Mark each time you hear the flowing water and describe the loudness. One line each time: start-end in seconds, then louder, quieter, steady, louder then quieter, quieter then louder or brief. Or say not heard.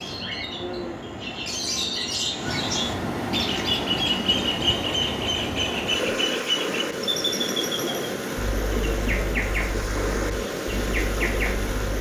0.0-11.9 louder.